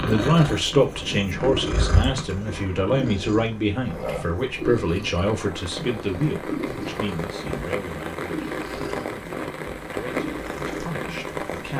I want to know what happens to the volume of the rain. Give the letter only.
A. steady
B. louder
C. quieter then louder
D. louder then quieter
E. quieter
B.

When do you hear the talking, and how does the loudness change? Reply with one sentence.
You can hear the talking from 0.0 to 11.7 s, getting quieter.